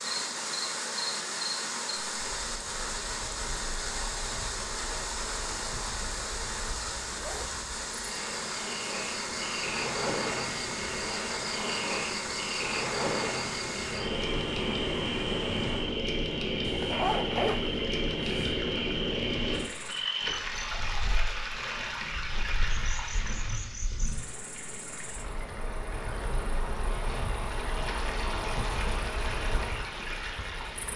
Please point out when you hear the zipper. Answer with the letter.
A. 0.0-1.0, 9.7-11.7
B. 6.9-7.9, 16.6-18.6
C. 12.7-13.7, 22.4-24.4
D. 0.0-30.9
B.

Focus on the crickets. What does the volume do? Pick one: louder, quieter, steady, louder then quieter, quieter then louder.
louder then quieter.